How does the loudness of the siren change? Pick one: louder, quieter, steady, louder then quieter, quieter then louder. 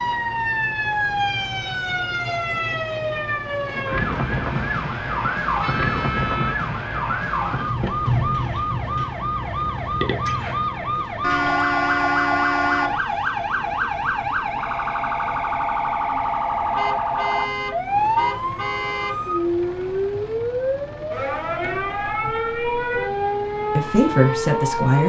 steady.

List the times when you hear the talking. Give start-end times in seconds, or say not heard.
23.8-25.0.